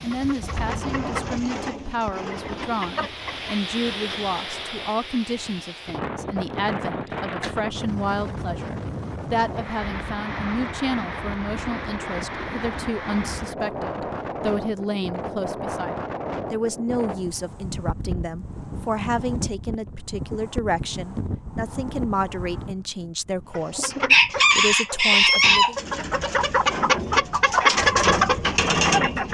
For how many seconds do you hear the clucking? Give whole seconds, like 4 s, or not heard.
9 s.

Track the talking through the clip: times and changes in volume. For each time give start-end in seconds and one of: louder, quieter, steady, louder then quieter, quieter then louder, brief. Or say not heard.
0.0-25.8 steady.